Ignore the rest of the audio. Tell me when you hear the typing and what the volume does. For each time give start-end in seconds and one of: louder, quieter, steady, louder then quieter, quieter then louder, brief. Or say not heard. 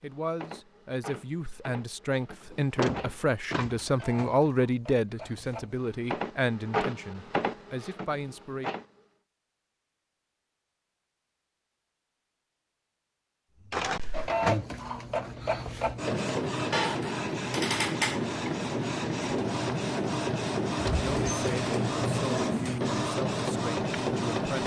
not heard.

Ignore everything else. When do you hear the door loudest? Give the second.
3 s.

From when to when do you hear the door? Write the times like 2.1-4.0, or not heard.
2.5-4.2, 20.8-22.8.